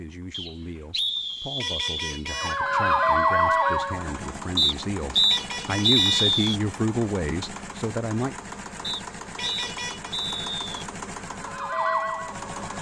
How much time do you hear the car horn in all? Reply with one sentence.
The car horn can be heard for 3 seconds in total.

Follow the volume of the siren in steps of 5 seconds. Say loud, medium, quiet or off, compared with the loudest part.
loud, off, medium.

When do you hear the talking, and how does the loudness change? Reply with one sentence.
You can hear the talking from 0.0 to 8.3 s, getting louder.